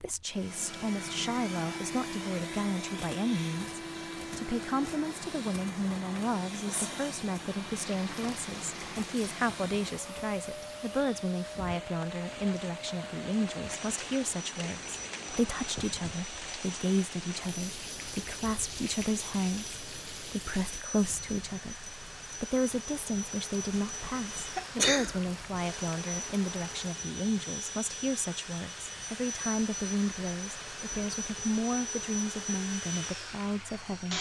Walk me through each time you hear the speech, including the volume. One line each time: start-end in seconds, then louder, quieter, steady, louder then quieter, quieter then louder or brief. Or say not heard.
0.0-34.1 steady.